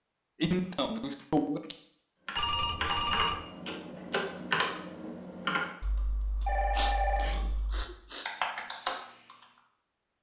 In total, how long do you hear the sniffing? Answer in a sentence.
The sniffing can be heard for 3 seconds in total.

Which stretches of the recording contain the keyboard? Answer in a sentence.
The keyboard can be heard from 2.2 to 9.4 s.